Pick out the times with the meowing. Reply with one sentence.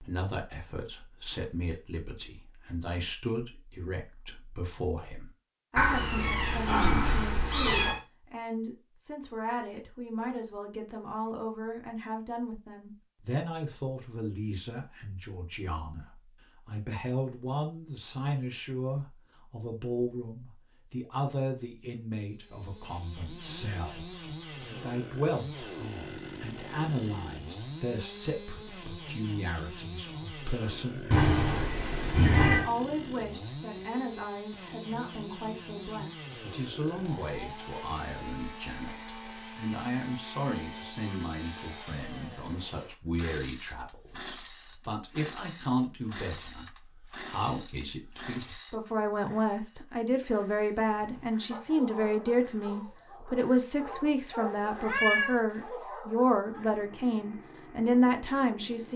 You can hear the meowing from 5.8 to 8.0 s, from 31.1 to 32.7 s and from 54.7 to 55.4 s.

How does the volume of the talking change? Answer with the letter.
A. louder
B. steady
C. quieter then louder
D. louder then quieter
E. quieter
A.